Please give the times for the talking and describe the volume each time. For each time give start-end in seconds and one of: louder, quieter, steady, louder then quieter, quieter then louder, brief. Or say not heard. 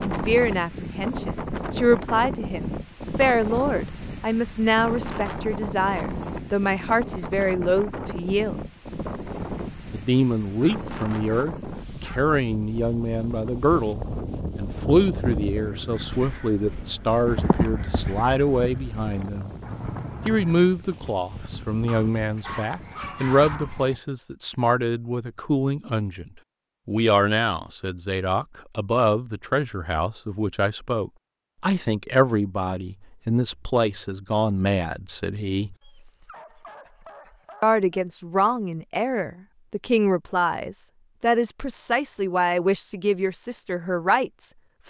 0.0-8.6 steady
9.9-19.6 steady
20.2-35.8 steady
37.6-44.8 steady.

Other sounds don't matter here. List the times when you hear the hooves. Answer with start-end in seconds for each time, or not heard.
13.3-20.8.